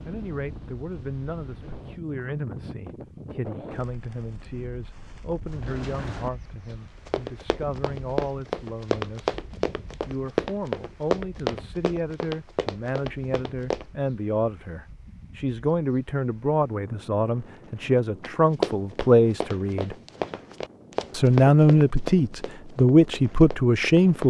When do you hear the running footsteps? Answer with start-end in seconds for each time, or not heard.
5.5-13.8, 18.2-24.2.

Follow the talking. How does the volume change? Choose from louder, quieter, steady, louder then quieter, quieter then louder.
louder.